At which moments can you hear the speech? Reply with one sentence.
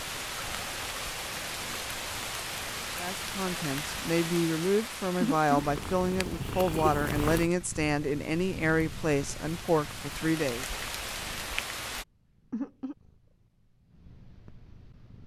You can hear the speech from 3.0 to 10.7 s.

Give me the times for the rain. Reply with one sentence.
The rain can be heard from 0.0 to 12.1 s.